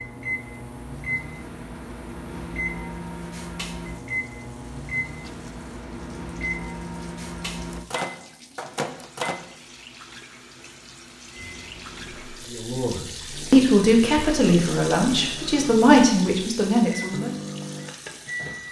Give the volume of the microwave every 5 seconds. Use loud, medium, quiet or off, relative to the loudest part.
loud, loud, quiet, loud.